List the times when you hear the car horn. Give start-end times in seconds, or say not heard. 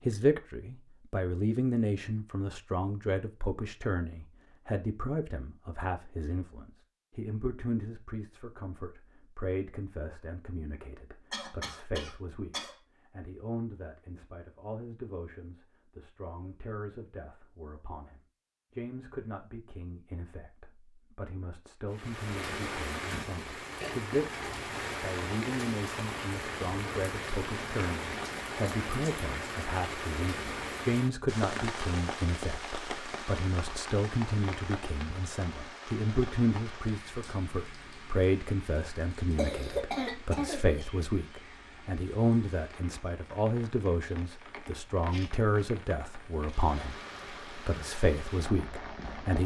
not heard.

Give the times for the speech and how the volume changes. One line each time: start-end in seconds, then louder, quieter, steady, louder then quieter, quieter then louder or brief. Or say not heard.
0.1-49.4 quieter then louder.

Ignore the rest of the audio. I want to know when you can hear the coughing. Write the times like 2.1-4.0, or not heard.
11.3-12.8, 39.4-40.6.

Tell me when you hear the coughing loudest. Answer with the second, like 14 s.
40 s.